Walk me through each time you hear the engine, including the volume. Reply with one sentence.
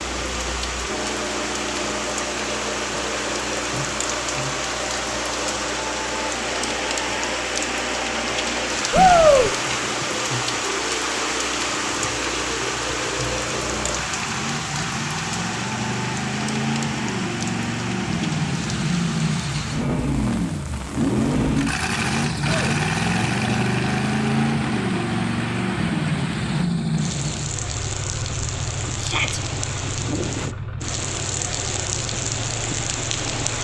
You can hear the engine from 0.0 to 33.6 s, getting louder then quieter.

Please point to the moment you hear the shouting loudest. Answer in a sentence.
The loudest moment of the shouting is at 9 seconds.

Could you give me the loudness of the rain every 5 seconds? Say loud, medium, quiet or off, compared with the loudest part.
loud, loud, loud, medium, medium, medium, loud.